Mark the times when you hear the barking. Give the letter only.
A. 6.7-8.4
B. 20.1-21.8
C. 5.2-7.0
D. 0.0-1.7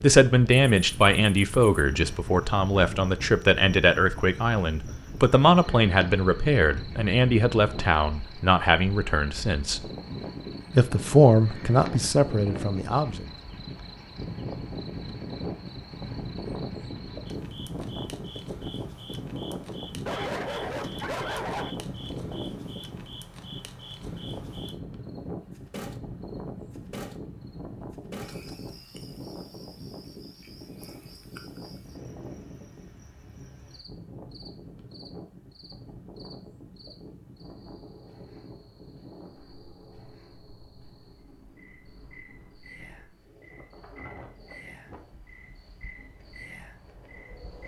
B.